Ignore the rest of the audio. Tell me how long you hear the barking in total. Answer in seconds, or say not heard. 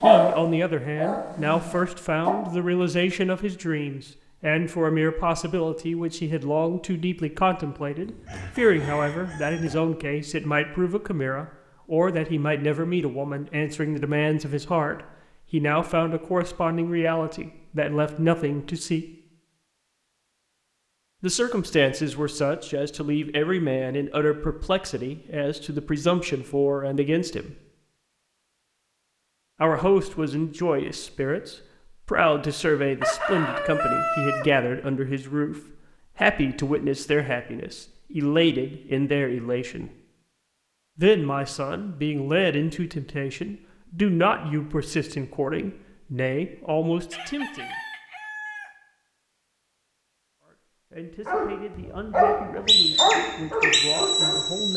6 s.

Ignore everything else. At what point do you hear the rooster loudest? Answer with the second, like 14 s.
34 s.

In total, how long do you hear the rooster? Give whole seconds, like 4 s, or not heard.
5 s.